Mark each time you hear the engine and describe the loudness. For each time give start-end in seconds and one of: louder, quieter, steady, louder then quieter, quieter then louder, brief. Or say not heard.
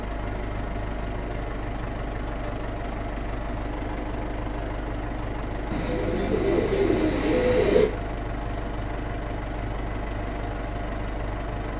0.0-11.7 steady.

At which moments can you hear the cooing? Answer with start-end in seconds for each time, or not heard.
5.7-7.9.